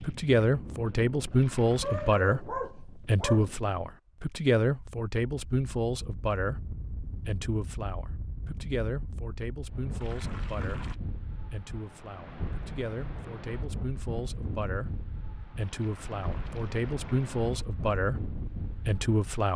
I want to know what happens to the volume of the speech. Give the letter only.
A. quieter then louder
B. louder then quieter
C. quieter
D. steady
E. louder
A.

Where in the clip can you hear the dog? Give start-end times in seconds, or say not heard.
1.8-3.8.